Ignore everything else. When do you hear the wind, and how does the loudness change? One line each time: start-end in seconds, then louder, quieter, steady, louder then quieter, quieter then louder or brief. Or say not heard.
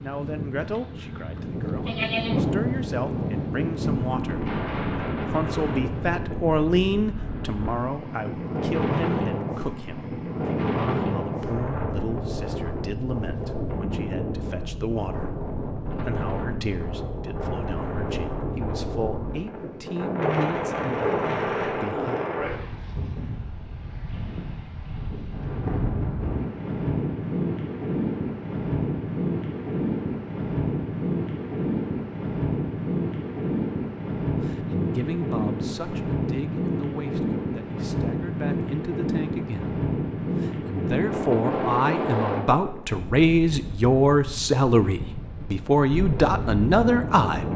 0.0-47.5 steady.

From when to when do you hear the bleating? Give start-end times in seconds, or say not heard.
1.4-2.6.